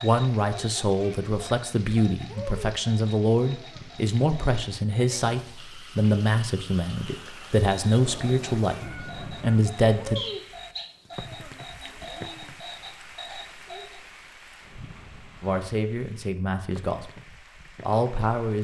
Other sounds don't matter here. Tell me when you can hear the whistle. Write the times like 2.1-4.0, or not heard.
10.2-10.8.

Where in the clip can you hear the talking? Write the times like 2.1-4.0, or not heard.
0.0-10.2, 15.4-18.5.